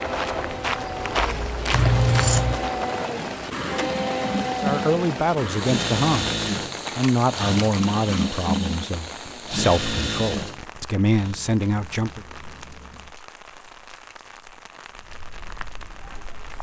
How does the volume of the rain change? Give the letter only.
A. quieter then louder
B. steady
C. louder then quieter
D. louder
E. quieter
E.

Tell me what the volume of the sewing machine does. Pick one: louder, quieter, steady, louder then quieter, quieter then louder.
louder.